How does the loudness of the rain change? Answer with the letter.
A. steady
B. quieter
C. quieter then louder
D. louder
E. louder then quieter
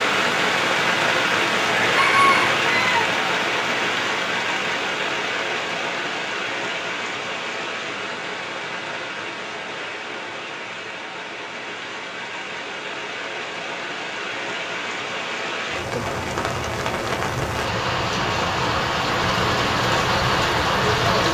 C.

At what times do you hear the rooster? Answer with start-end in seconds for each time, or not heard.
1.7-3.1.